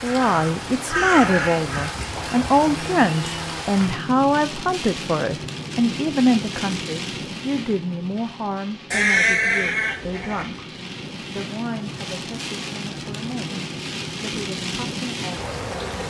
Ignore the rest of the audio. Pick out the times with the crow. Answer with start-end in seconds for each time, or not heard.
0.0-1.9.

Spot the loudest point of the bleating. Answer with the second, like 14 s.
9 s.